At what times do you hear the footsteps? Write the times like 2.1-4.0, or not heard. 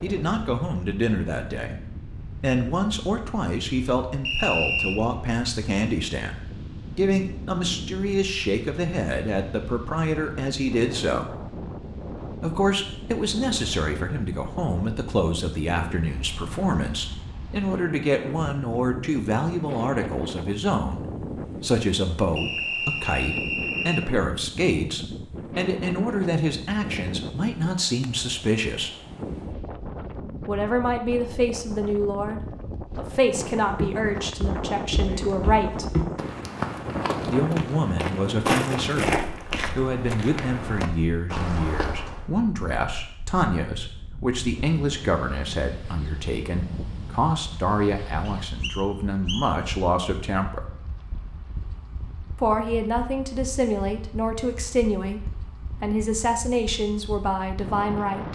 33.7-42.2.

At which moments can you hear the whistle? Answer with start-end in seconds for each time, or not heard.
4.2-5.0, 22.4-24.1, 48.2-49.5.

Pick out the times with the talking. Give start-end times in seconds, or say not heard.
0.0-11.3, 12.4-28.9, 30.4-35.9, 37.2-50.6, 52.4-58.3.